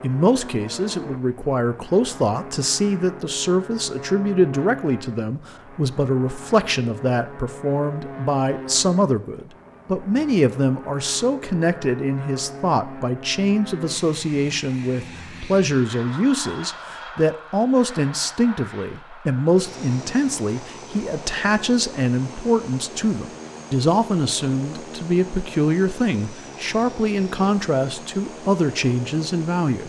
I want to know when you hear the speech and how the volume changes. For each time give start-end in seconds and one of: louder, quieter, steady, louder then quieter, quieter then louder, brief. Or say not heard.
0.0-29.8 steady.